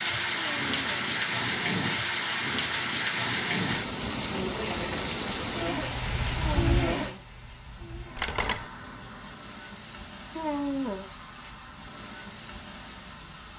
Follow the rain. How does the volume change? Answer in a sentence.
The loudness of the rain goes down.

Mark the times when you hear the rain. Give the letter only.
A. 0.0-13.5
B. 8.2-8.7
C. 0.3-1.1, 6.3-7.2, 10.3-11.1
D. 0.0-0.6
A.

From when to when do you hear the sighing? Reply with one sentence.
The sighing can be heard from 0.3 to 1.1 s, from 6.3 to 7.2 s and from 10.3 to 11.1 s.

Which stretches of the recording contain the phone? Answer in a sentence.
You can hear the phone from 8.2 to 8.7 s.